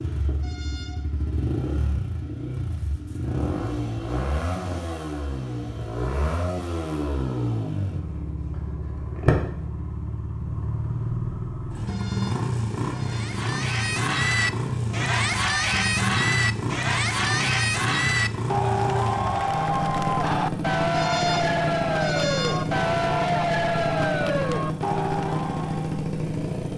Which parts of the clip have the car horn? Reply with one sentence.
You can hear the car horn from 0.4 to 1.1 s, from 11.8 to 13.4 s and from 20.9 to 22.7 s.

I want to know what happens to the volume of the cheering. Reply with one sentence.
The loudness of the cheering stays about the same.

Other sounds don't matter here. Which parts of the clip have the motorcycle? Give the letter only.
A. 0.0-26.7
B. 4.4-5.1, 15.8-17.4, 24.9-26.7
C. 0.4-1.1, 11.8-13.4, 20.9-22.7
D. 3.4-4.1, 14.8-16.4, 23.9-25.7
A.